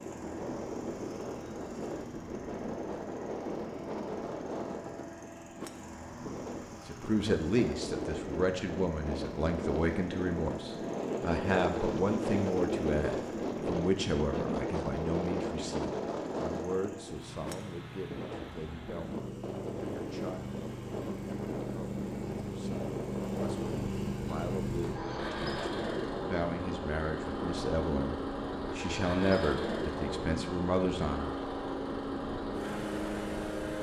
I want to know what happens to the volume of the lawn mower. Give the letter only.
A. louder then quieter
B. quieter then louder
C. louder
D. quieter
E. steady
C.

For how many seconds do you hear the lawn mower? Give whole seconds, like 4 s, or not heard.
34 s.